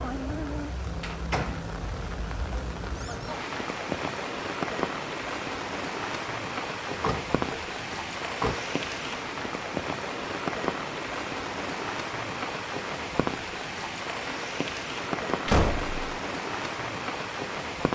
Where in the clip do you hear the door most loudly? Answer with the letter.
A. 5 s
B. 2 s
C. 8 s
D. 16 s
D.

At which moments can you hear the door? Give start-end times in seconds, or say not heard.
1.0-1.6, 7.0-8.6, 15.4-16.1.